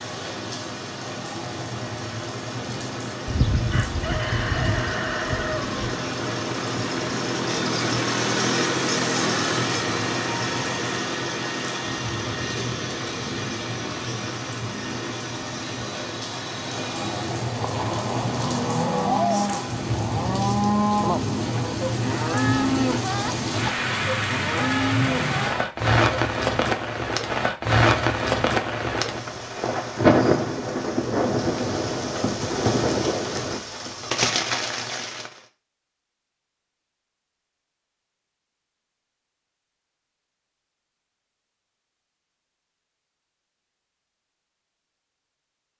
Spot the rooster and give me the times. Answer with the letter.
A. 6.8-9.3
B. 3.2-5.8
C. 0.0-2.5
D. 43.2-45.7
B.